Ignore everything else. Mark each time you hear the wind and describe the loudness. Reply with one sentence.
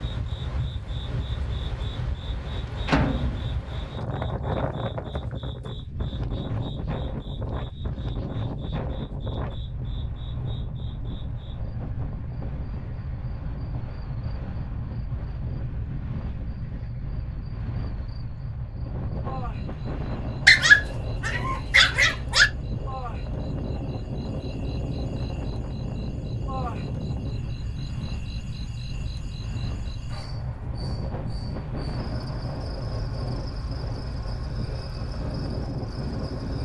You can hear the wind from 0.0 to 36.6 s, at a steady volume.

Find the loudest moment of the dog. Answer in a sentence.
The loudest moment of the dog is at 21 seconds.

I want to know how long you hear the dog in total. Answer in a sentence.
The dog can be heard for 2 seconds in total.